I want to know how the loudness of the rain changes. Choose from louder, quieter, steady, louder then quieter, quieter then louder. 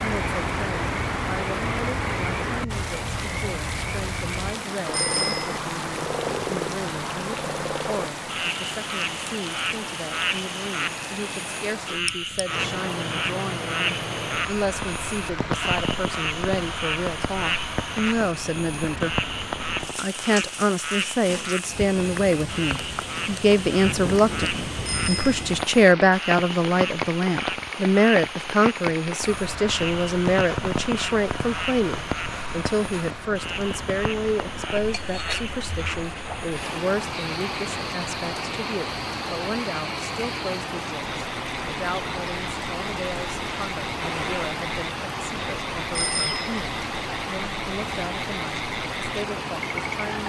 steady.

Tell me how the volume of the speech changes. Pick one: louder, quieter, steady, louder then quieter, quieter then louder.
louder then quieter.